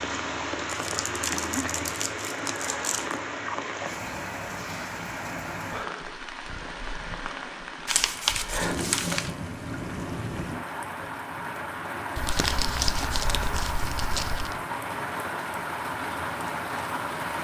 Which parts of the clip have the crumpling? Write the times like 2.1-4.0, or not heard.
0.7-3.2, 7.8-9.3, 12.2-14.6.